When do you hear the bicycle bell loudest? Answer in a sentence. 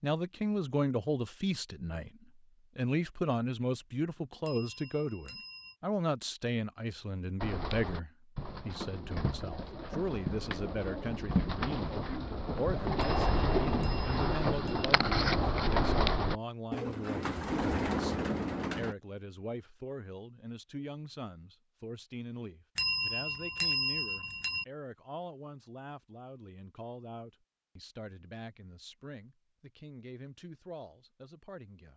The loudest moment of the bicycle bell is at 24 seconds.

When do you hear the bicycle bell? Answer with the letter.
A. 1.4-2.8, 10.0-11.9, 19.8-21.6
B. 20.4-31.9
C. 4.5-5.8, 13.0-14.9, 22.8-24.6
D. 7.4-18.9
C.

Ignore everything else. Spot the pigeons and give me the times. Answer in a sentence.
You can hear the pigeons from 7.4 to 18.9 s.